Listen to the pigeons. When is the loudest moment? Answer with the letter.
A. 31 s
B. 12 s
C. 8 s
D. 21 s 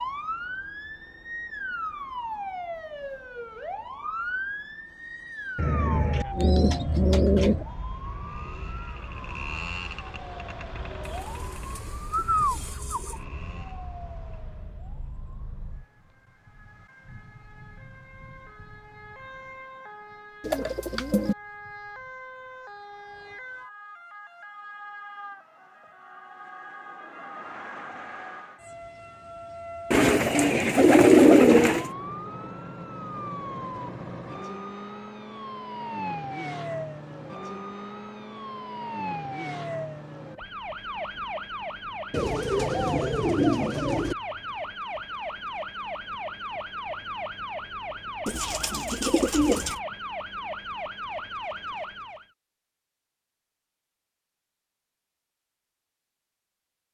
A.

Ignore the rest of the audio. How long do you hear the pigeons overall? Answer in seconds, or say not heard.
11 s.